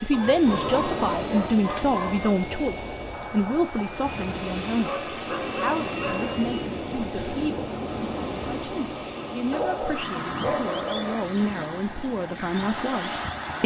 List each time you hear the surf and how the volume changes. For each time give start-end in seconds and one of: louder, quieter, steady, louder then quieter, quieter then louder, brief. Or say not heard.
0.0-13.6 steady.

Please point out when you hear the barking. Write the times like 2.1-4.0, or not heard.
0.1-2.4, 4.8-6.3, 9.5-11.2.